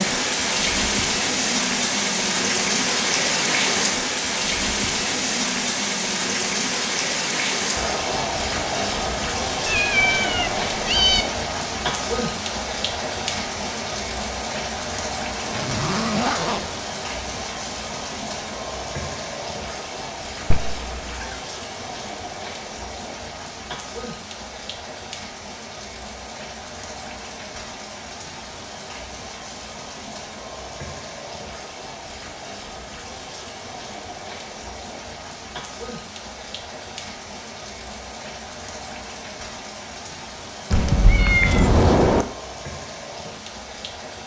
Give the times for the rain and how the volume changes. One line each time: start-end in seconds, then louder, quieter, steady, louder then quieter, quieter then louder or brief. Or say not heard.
0.0-44.2 quieter.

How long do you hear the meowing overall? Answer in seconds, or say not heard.
4 s.